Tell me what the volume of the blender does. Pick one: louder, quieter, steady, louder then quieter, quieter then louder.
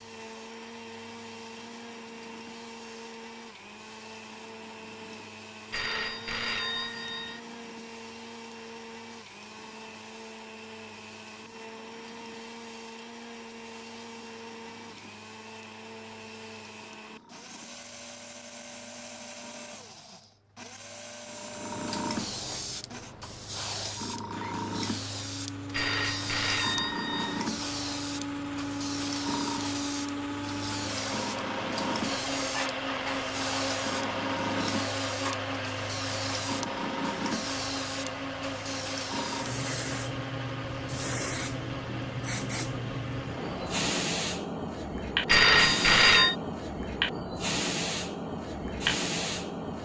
louder.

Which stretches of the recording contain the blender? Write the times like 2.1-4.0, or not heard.
0.0-43.9.